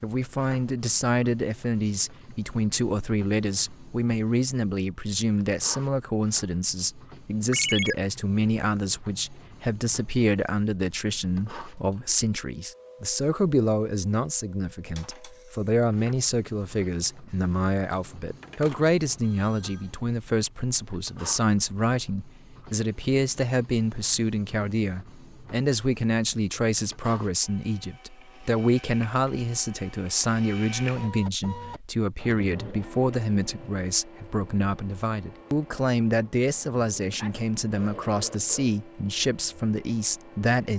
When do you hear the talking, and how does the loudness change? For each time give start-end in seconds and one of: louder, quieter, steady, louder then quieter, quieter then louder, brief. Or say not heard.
0.0-40.7 steady.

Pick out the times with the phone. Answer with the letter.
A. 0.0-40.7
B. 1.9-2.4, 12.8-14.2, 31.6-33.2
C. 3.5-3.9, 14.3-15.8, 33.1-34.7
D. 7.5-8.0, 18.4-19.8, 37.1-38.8
D.